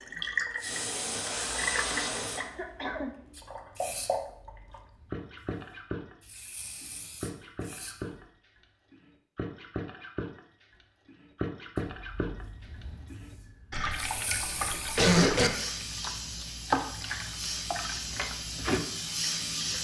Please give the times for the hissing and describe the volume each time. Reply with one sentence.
You can hear the hissing from 0.1 to 8.2 s, getting quieter then louder; and from 11.8 to 19.7 s, getting louder.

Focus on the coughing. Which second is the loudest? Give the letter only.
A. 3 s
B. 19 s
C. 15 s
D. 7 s
C.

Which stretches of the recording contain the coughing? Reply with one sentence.
The coughing can be heard from 2.4 to 3.1 s and from 13.7 to 15.5 s.